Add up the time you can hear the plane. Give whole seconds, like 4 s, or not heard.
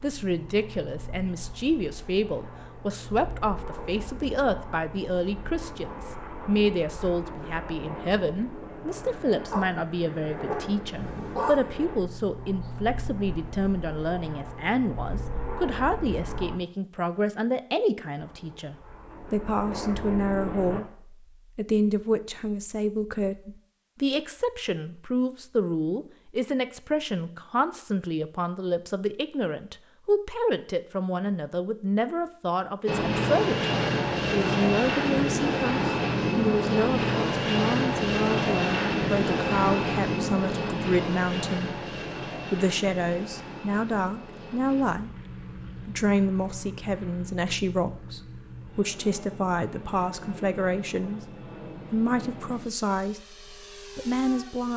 41 s.